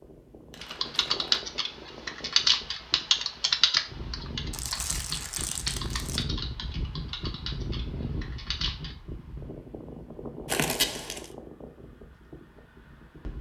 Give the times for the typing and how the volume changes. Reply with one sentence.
You can hear the typing from 0.6 to 8.9 s, getting quieter.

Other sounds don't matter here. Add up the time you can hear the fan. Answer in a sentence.
The fan can be heard for 13 seconds in total.